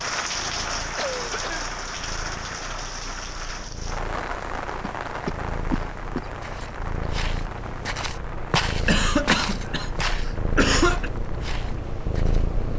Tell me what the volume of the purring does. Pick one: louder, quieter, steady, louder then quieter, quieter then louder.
louder.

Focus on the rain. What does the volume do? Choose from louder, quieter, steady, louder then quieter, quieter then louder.
quieter.